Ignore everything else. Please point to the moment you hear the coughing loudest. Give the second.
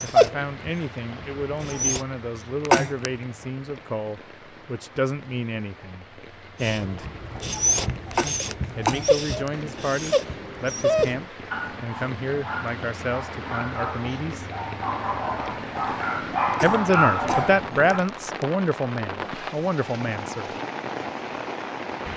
3 s.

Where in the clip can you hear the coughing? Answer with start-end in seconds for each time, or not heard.
2.6-3.1, 8.1-9.5, 16.5-18.5.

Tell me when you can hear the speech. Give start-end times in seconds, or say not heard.
0.0-7.1, 8.8-14.4, 16.6-20.6.